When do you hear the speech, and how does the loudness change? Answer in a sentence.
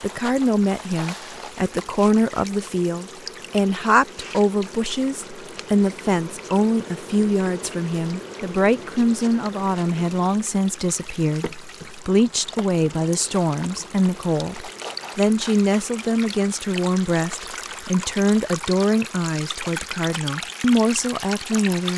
You can hear the speech from 0.0 to 21.9 s, at a steady volume.